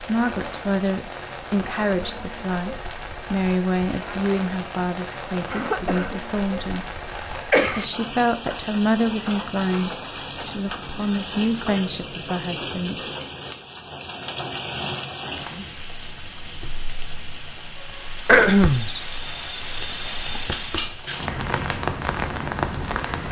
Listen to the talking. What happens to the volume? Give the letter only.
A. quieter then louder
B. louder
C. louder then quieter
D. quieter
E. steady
E.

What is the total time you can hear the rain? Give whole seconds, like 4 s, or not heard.
23 s.